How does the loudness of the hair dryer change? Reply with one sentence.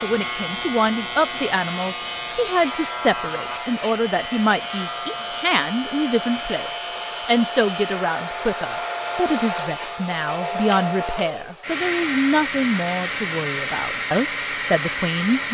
The loudness of the hair dryer goes up.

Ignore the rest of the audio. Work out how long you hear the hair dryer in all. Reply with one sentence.
The hair dryer can be heard for 15 seconds in total.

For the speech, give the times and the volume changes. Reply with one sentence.
You can hear the speech from 0.0 to 15.4 s, at a steady volume.